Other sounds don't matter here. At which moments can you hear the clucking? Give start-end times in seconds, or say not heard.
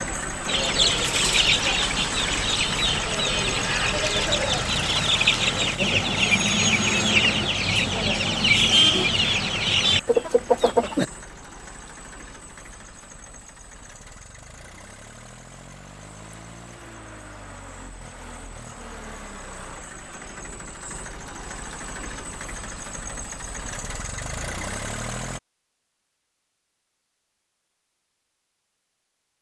0.5-11.1.